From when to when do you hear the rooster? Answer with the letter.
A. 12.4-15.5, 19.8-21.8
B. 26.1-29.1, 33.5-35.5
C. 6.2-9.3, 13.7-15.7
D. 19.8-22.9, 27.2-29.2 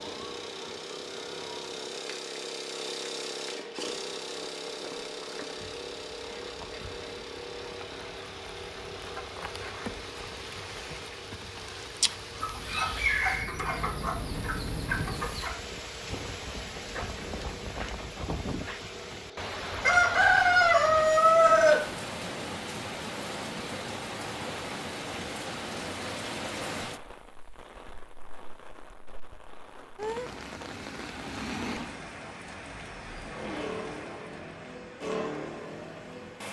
A.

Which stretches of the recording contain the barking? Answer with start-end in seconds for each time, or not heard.
not heard.